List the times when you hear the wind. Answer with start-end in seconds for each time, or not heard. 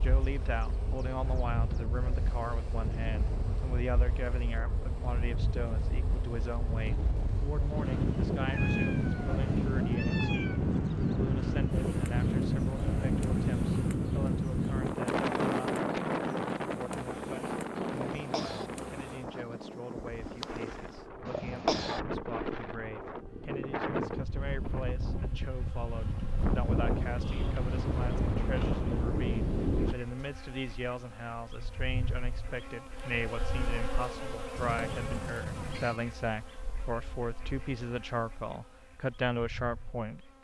0.0-29.9.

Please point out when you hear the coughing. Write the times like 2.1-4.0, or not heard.
18.0-18.7, 21.2-22.0.